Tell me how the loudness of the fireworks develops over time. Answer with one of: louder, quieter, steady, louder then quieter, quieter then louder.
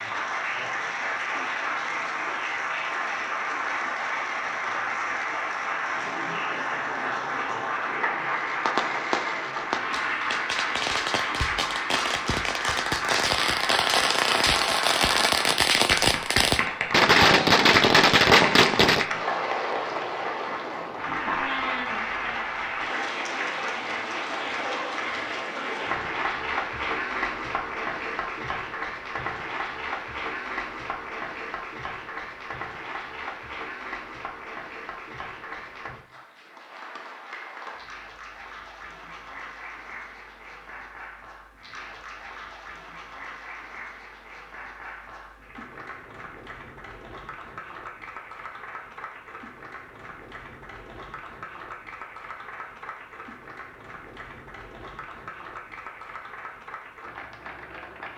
louder.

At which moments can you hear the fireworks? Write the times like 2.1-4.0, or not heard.
8.2-19.1.